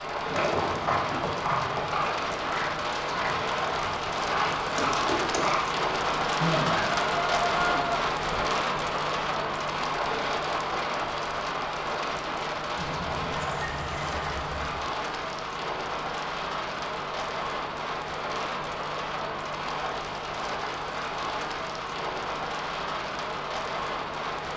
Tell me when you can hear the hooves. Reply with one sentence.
The hooves can be heard from 0.2 to 5.6 s.